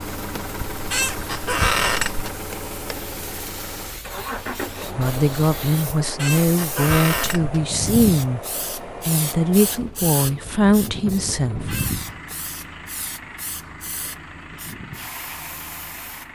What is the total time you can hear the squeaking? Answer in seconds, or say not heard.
4 s.